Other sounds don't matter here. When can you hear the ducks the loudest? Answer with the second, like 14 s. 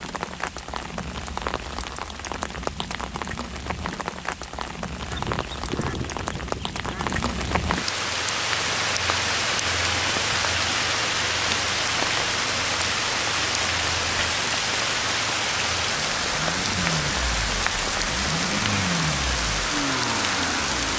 6 s.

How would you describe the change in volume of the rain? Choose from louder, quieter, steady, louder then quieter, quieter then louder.
louder.